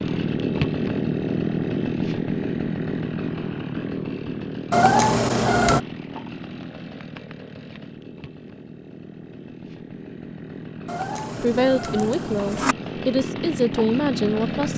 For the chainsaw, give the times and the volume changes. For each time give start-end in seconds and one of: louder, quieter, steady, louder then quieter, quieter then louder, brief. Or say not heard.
0.0-14.7 quieter then louder.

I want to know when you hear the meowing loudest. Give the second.
5 s.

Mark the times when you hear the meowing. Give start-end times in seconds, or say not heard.
4.7-5.8, 10.8-12.8.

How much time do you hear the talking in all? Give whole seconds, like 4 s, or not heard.
3 s.